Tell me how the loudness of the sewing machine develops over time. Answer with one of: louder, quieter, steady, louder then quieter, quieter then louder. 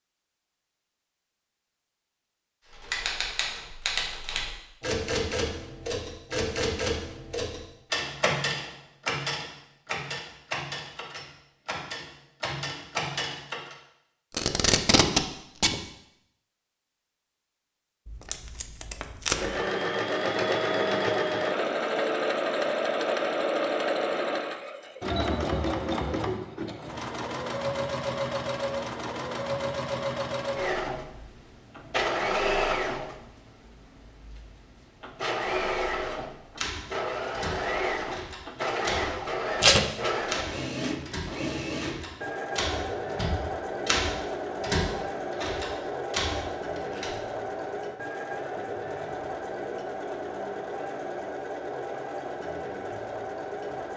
quieter.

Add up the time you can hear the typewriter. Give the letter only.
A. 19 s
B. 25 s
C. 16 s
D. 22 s
D.